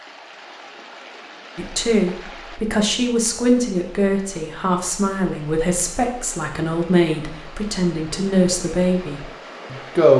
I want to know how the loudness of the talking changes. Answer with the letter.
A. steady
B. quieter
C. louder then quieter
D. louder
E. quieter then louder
A.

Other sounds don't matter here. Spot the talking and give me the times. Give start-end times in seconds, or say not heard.
1.6-10.1.